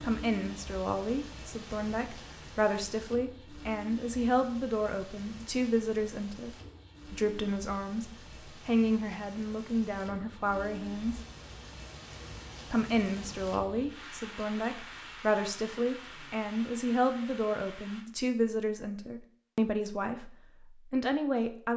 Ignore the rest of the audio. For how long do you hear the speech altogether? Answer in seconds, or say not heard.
20 s.